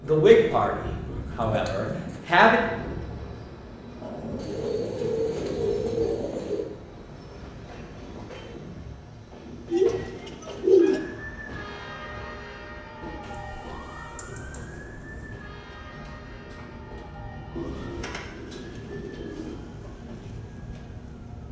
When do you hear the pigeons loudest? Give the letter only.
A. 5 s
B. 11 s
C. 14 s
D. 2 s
B.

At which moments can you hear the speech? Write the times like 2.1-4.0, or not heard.
0.0-2.6.